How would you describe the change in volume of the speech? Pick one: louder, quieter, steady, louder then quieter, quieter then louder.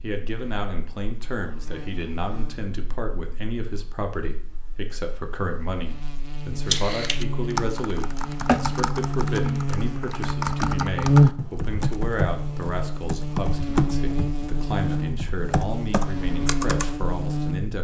steady.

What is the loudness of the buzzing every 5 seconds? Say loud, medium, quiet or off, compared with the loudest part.
quiet, medium, loud, medium.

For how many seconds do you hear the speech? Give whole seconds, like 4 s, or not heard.
18 s.